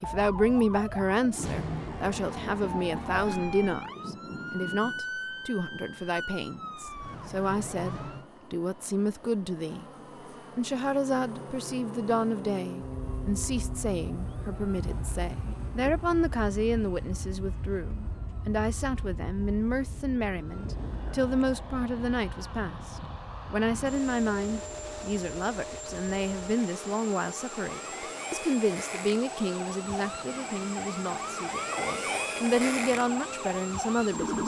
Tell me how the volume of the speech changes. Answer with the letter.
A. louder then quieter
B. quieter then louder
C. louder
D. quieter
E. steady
E.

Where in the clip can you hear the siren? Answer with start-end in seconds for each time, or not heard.
0.0-8.2, 12.8-34.4.